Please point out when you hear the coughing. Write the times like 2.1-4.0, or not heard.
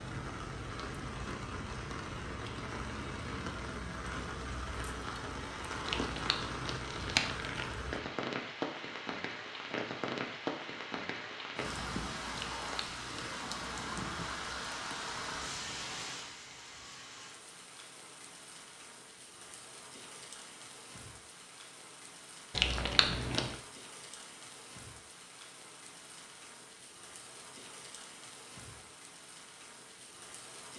not heard.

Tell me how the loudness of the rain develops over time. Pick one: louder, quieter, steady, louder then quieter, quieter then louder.
quieter.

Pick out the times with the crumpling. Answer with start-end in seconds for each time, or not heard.
5.8-7.8, 12.3-13.4, 22.6-23.6.